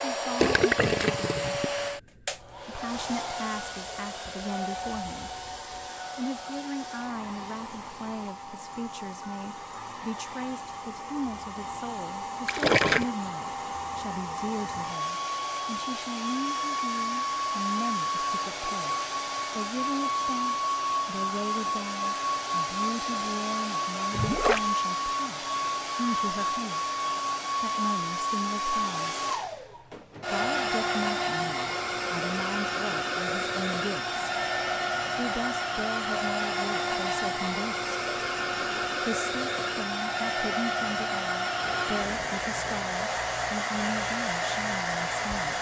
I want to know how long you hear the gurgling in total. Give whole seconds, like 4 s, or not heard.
4 s.